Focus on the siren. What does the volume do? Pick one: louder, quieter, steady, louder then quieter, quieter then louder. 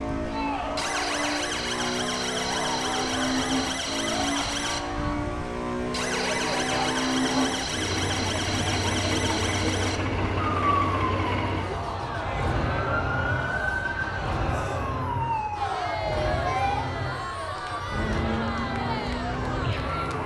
steady.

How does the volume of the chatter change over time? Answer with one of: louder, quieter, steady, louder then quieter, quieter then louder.
steady.